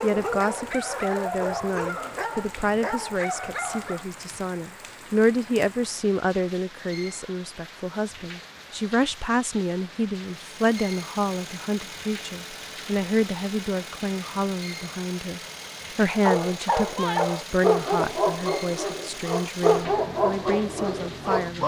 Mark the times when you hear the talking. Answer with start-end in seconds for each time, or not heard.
0.0-21.6.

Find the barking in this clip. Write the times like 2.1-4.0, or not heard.
0.0-4.0, 16.2-21.6.